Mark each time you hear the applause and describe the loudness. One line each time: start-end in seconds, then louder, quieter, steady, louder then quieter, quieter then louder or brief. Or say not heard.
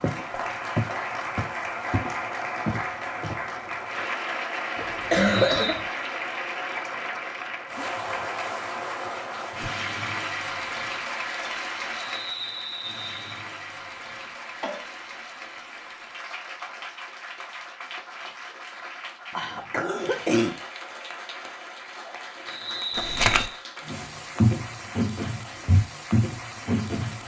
0.0-27.2 quieter.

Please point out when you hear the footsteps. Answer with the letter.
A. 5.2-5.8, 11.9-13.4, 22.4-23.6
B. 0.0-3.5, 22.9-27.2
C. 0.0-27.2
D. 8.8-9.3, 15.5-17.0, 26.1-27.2
B.